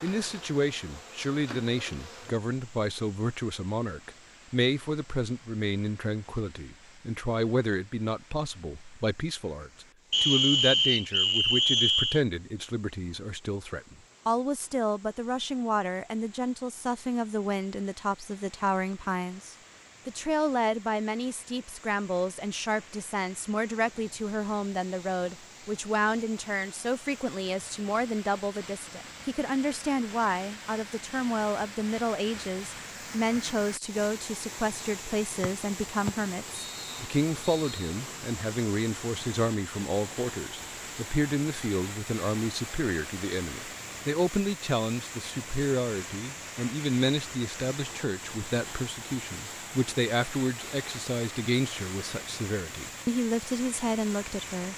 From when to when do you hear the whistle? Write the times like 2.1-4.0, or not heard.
10.1-12.2, 35.4-37.9.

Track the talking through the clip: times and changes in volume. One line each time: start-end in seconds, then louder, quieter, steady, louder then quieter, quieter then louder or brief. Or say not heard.
0.0-54.7 steady.